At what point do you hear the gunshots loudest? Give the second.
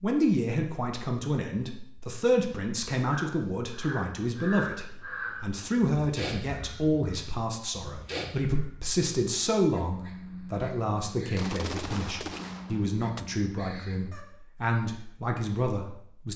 12 s.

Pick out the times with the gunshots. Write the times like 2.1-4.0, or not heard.
11.3-13.2.